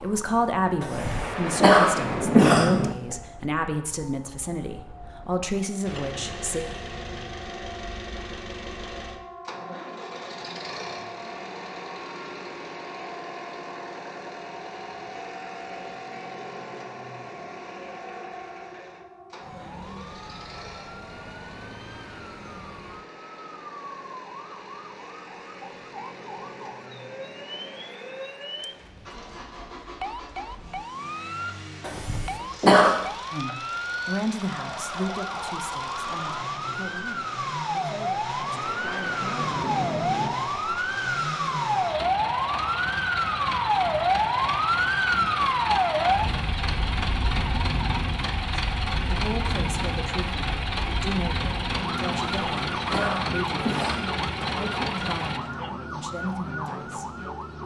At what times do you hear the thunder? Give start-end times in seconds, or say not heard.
0.9-3.0, 38.4-40.4.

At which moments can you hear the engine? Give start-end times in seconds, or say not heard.
5.8-55.4.